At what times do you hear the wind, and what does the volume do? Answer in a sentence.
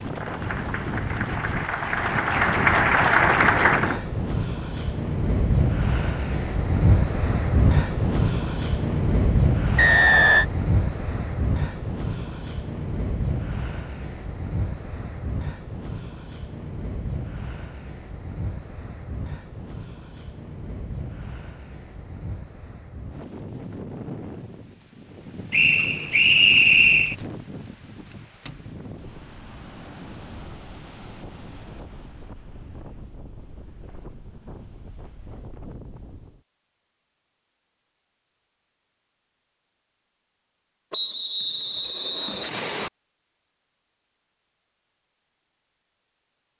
You can hear the wind from 0.0 to 36.4 s, getting quieter.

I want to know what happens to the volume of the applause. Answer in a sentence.
The loudness of the applause goes up.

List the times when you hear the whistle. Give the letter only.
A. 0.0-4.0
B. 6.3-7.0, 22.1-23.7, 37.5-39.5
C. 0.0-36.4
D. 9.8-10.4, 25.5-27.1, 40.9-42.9
D.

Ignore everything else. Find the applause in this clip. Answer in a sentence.
The applause can be heard from 0.0 to 4.0 s.